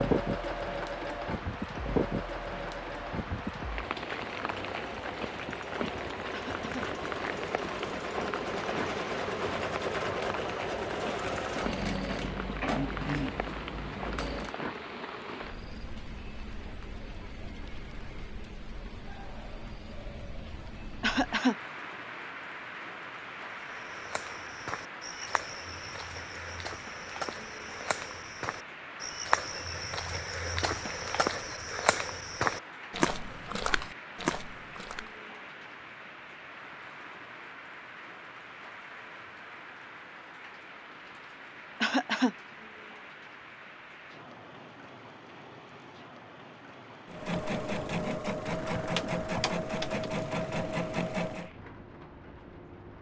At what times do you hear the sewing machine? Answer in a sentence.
You can hear the sewing machine from 0.0 to 14.6 s and from 47.0 to 51.5 s.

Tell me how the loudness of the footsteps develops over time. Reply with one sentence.
The volume of the footsteps goes up.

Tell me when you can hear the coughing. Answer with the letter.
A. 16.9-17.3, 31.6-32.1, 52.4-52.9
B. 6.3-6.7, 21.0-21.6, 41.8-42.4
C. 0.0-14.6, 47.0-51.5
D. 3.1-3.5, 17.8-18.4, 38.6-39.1
B.